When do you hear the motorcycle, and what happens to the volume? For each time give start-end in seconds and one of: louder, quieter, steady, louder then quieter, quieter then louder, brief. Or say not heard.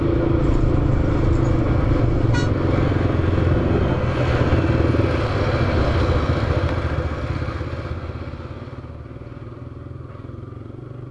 0.0-11.0 quieter.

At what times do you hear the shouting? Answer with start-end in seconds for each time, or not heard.
not heard.